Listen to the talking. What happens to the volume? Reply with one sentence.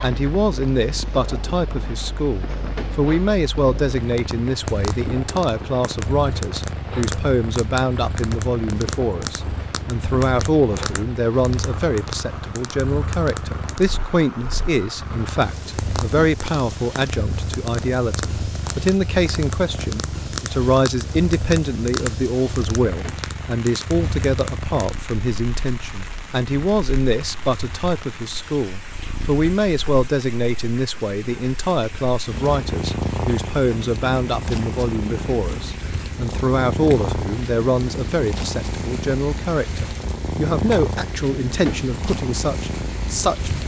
The volume of the talking stays about the same.